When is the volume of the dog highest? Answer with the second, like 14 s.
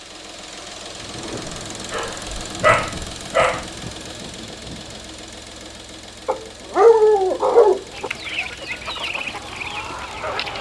7 s.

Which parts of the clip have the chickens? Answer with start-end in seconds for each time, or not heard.
7.9-10.5.